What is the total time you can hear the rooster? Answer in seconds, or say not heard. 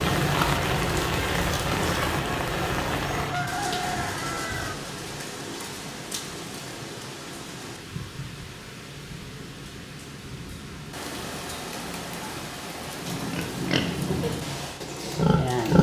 2 s.